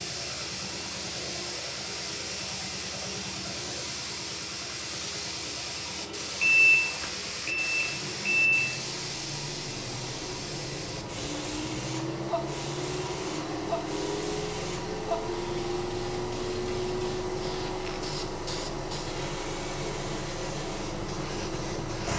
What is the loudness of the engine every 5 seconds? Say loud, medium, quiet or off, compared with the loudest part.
medium, medium, loud, loud, loud.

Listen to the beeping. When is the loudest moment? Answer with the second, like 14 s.
7 s.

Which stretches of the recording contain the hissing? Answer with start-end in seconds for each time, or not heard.
0.0-22.1.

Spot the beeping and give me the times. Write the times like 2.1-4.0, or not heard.
6.4-8.8.